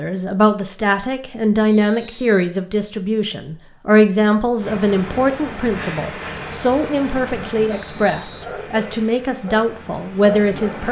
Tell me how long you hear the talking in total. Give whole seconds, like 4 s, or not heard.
11 s.